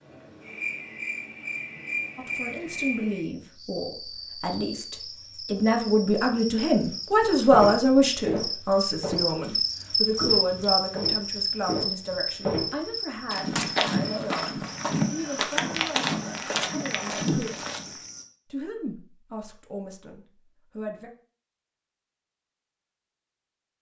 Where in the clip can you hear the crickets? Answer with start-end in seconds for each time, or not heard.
0.0-18.2.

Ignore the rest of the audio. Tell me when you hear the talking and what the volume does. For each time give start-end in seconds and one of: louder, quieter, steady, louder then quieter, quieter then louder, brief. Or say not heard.
2.1-17.7 louder then quieter
18.5-21.1 brief.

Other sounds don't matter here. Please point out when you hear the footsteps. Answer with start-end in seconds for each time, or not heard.
7.5-17.9.